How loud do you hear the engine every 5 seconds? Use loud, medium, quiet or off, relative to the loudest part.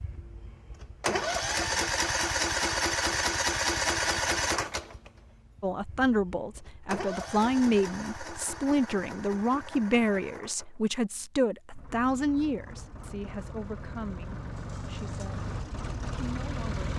loud, quiet, quiet, medium.